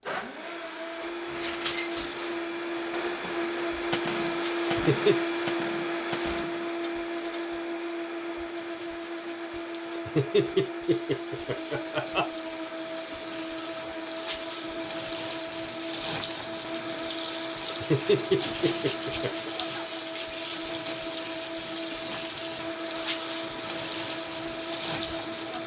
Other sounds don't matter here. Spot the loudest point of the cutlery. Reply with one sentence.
The loudest moment of the cutlery is at 2 seconds.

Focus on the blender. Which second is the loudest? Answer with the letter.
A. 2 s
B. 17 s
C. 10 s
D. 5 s
D.